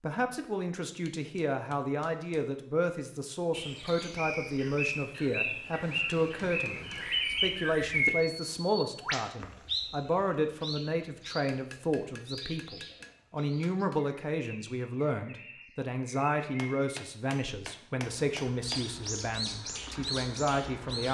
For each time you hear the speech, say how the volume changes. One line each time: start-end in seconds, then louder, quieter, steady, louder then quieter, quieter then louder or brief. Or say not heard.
0.0-21.0 steady.